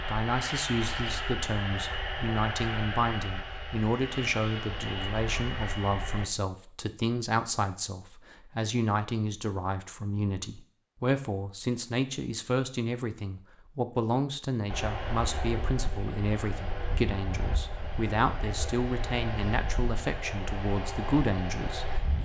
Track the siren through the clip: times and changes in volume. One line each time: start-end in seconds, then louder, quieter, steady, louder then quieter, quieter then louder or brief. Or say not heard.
not heard.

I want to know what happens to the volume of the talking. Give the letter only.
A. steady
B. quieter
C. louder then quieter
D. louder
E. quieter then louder
A.